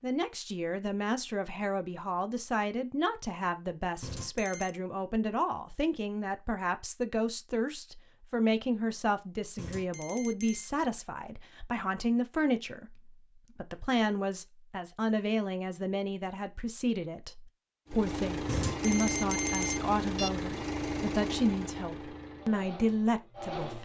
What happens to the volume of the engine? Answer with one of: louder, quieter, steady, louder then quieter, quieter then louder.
quieter.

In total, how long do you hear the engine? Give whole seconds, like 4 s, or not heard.
6 s.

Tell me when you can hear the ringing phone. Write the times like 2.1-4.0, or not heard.
4.0-4.8, 9.6-10.7, 18.4-20.3.